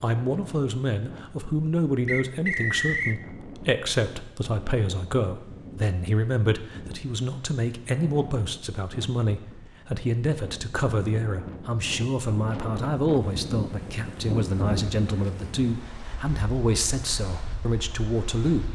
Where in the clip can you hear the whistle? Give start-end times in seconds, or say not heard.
2.0-3.2.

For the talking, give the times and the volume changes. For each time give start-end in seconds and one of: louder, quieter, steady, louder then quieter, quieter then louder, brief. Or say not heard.
0.0-18.6 steady.